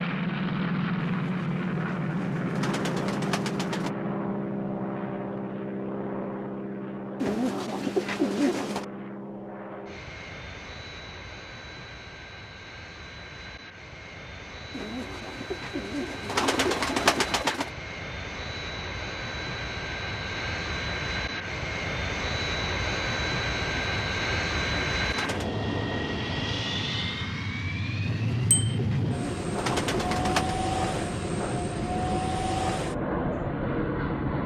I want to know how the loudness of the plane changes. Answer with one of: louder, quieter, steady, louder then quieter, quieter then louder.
quieter then louder.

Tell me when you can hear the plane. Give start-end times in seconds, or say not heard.
0.0-34.4.